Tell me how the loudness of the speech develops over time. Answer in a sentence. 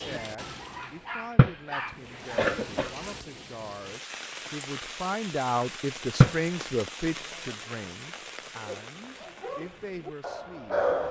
The loudness of the speech goes up, then down.